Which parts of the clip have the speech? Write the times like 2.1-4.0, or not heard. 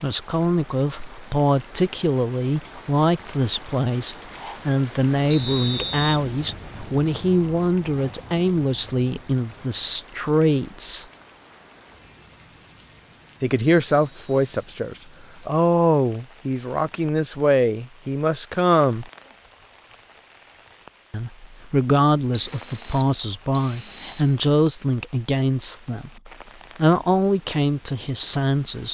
0.0-11.1, 13.4-19.1, 21.1-28.8.